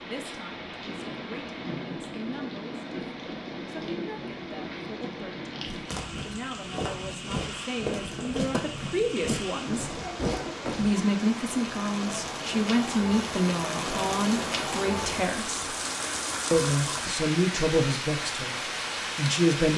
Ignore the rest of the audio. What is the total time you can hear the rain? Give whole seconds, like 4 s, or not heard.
20 s.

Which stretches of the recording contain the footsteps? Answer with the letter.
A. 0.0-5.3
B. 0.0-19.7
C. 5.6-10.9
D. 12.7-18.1
C.